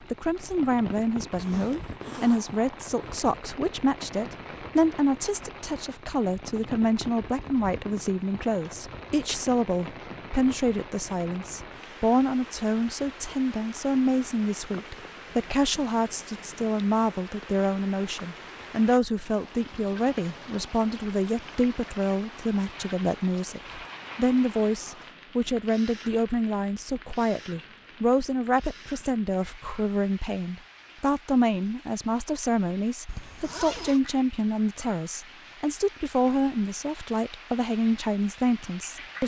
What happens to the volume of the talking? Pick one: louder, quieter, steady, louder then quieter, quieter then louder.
steady.